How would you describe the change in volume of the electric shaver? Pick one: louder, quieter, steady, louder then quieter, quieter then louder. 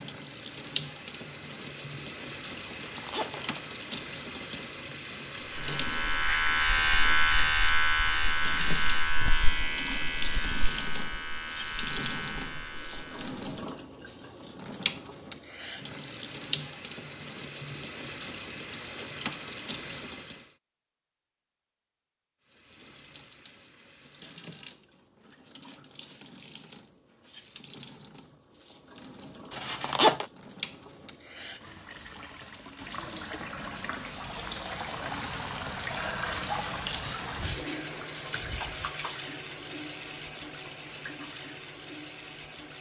quieter.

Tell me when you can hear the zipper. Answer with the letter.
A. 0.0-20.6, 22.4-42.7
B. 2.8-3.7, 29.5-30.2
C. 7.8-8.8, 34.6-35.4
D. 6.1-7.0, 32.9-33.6
B.